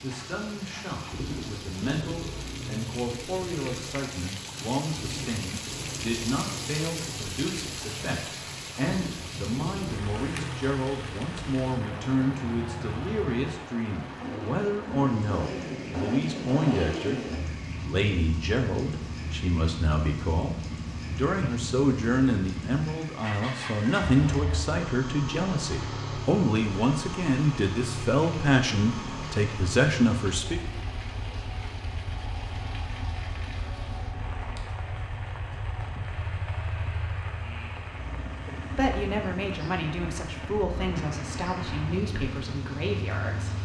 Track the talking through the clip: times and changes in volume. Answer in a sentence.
The talking can be heard from 0.0 to 30.6 s, getting louder; and from 38.7 to 43.6 s, at a steady volume.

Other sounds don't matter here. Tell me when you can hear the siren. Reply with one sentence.
The siren can't be heard in this clip.